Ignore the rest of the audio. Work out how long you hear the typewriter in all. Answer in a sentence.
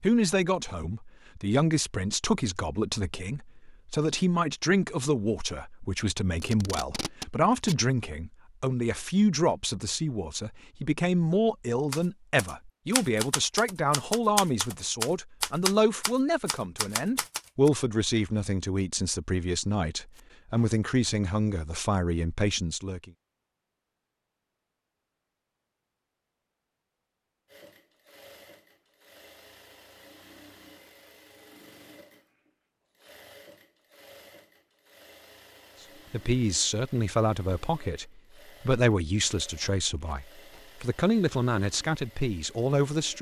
You can hear the typewriter for 6 seconds altogether.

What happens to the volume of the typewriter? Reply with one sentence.
The loudness of the typewriter goes up, then down.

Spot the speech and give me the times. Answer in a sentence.
The speech can be heard from 0.0 to 23.1 s and from 36.1 to 43.1 s.